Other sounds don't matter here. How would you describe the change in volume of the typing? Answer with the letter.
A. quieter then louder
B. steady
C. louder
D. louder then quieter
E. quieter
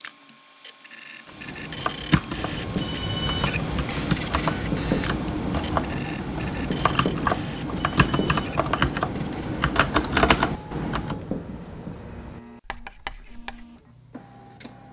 C.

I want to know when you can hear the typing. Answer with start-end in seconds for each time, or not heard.
1.2-11.2.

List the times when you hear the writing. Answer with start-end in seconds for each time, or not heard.
2.4-13.7.